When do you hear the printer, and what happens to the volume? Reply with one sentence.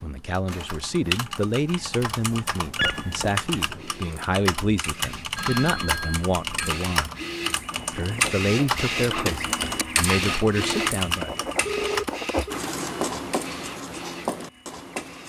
You can hear the printer from 0.0 to 15.2 s, getting louder then quieter.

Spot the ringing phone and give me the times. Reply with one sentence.
You can hear the ringing phone from 2.8 to 3.3 s, from 5.3 to 6.8 s and from 11.7 to 12.6 s.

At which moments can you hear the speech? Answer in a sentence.
You can hear the speech from 0.0 to 7.1 s and from 7.9 to 11.3 s.